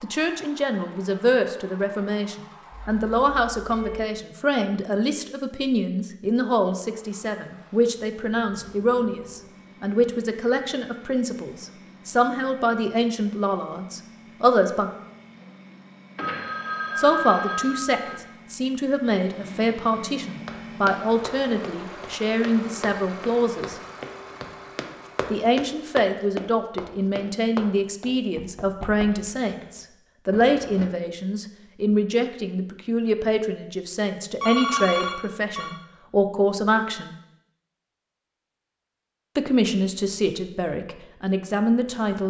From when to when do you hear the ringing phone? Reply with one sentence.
The ringing phone can be heard from 2.7 to 4.1 s, from 16.1 to 18.2 s and from 34.4 to 35.8 s.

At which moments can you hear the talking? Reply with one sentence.
The talking can be heard from 0.0 to 14.9 s, from 16.9 to 23.8 s, from 25.3 to 37.1 s and from 39.4 to 42.2 s.